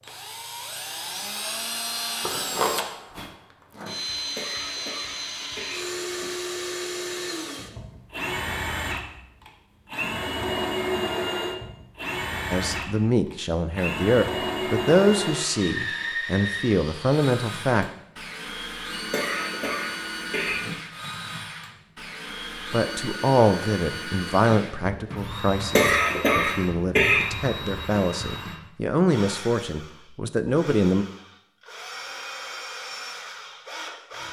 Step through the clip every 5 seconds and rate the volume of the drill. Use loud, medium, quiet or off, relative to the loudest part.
loud, loud, loud, loud, medium, medium, medium.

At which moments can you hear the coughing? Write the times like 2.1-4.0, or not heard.
4.3-6.3, 19.1-20.6, 25.8-27.2.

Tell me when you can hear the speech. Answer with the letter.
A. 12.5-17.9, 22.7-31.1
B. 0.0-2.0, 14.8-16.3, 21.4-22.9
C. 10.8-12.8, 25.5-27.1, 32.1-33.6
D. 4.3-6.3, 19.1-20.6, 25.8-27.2
A.